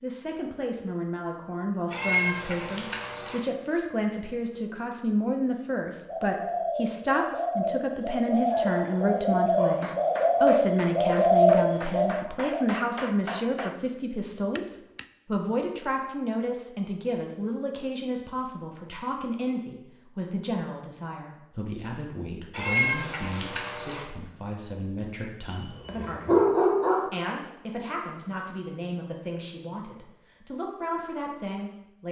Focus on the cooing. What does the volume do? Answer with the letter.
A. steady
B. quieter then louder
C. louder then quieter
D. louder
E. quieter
D.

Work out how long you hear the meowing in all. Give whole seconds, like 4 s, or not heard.
3 s.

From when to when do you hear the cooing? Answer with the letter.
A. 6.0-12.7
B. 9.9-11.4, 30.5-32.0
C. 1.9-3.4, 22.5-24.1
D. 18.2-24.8
A.